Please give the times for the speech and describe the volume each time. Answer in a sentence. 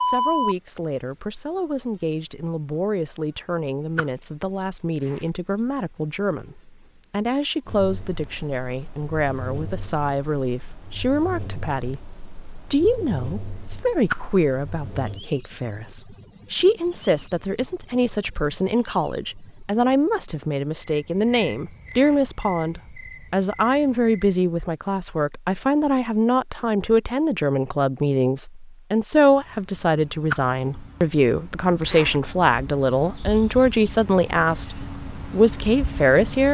You can hear the speech from 0.0 to 36.4 s, getting louder.